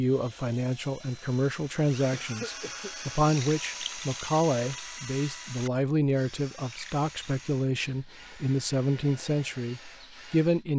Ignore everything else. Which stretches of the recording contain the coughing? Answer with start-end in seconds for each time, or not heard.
2.1-3.1.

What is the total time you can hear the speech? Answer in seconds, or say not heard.
11 s.